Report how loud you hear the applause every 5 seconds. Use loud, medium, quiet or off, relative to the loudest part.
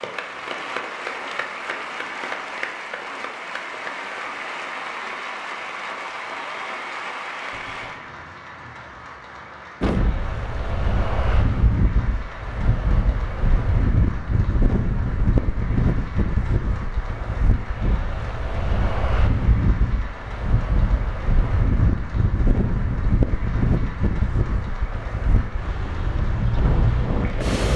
loud, loud, medium, medium, medium, medium.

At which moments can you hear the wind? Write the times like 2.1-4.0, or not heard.
9.8-27.7.